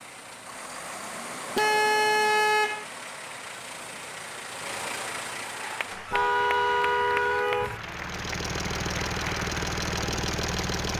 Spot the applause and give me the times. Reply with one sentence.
The applause can be heard from 5.5 to 10.9 s.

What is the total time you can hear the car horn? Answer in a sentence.
You can hear the car horn for 3 seconds altogether.